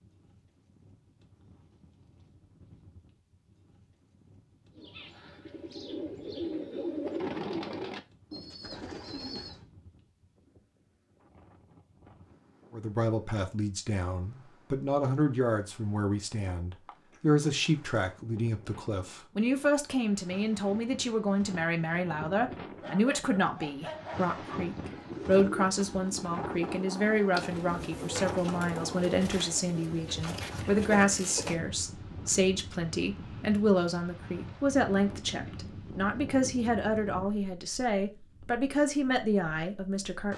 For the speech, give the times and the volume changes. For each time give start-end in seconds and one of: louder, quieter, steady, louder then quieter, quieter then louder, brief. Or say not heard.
12.7-40.3 steady.